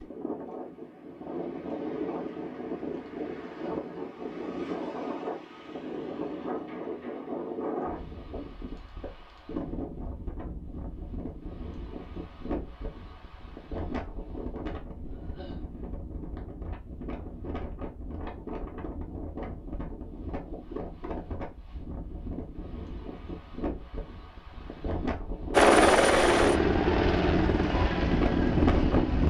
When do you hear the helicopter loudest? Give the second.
26 s.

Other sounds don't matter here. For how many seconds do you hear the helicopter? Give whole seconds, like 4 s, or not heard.
4 s.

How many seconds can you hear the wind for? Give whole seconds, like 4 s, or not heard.
29 s.